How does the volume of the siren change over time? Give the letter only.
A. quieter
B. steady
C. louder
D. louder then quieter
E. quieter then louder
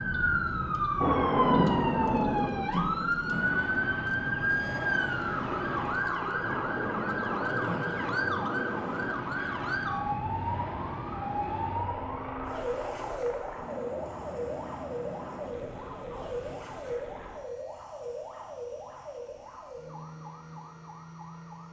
A.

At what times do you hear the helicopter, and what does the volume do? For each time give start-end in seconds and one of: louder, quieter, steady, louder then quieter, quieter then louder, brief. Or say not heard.
3.3-21.6 quieter.